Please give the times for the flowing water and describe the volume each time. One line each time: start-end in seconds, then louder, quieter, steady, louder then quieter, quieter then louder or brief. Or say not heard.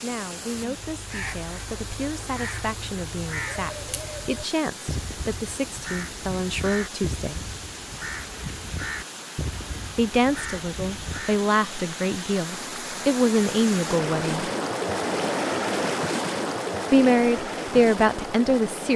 0.0-18.9 louder.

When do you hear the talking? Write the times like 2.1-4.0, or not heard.
0.0-7.5, 9.9-14.5, 16.9-18.9.